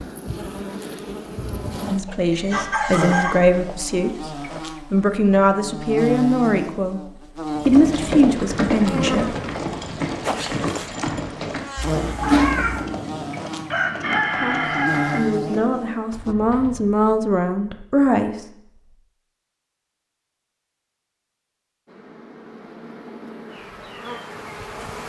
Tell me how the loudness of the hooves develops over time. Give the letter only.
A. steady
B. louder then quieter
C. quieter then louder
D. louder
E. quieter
E.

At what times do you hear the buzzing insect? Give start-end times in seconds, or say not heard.
0.0-16.4, 21.9-25.0.